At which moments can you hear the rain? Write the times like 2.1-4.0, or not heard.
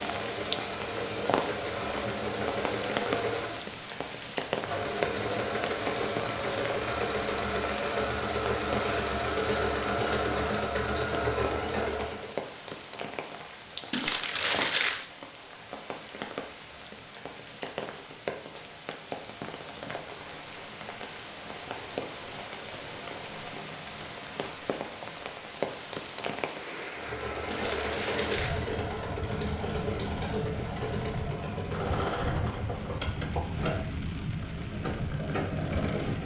0.0-36.2.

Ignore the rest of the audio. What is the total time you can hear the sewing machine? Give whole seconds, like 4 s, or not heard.
22 s.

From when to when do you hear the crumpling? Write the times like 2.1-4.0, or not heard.
13.9-15.1, 27.5-28.7.